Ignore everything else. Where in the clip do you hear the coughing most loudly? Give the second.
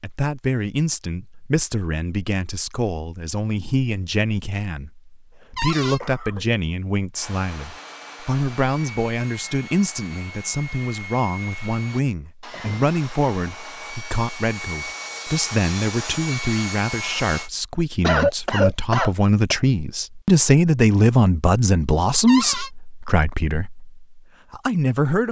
18 s.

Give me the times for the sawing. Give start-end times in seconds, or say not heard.
7.1-17.5.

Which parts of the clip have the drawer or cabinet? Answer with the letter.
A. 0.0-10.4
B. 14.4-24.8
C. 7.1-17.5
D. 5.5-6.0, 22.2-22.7
D.